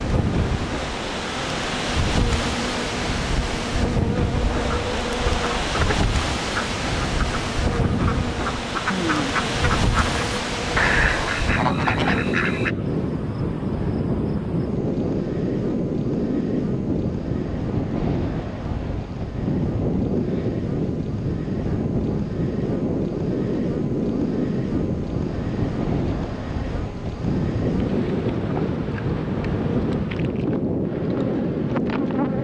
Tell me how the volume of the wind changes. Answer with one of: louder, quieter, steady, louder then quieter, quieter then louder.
steady.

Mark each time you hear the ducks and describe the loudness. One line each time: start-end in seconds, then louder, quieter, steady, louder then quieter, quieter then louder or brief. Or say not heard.
4.3-12.8 louder.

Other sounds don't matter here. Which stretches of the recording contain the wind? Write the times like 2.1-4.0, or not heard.
0.0-32.3.